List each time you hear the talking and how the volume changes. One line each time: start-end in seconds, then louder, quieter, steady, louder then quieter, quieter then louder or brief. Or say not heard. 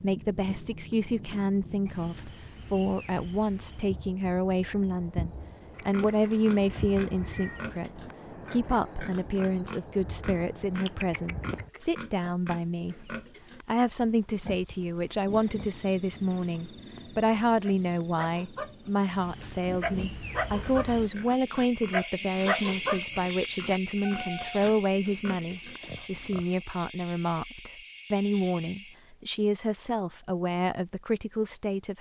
0.0-31.9 steady.